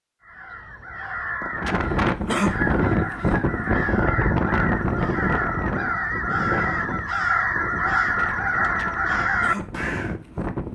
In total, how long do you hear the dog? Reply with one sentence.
The dog can't be heard in this clip.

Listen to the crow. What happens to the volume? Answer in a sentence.
The volume of the crow goes up.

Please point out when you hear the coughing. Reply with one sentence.
You can't hear the coughing here.